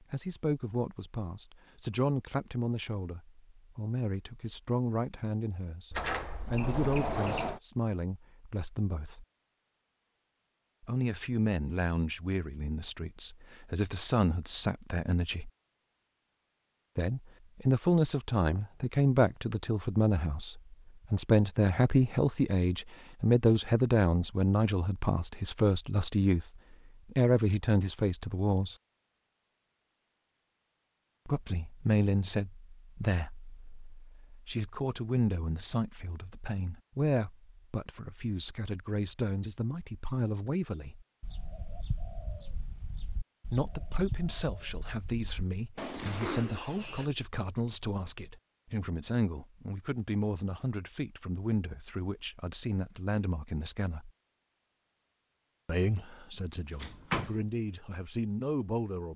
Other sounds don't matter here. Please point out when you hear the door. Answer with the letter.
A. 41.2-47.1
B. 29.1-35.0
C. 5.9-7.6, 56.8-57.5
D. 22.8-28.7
C.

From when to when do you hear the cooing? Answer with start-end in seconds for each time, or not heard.
41.2-47.1.